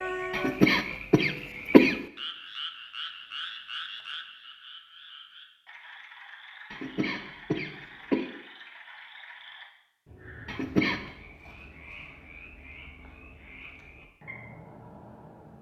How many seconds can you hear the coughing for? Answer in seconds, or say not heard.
4 s.